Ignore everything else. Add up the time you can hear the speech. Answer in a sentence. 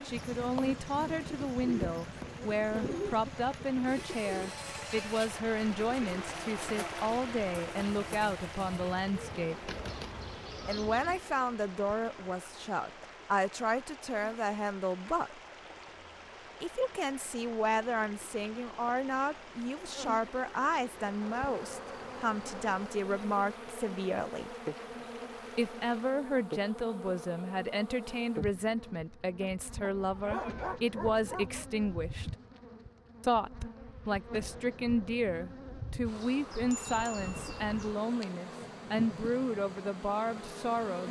You can hear the speech for 37 seconds altogether.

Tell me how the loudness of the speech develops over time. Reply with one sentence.
The loudness of the speech stays about the same.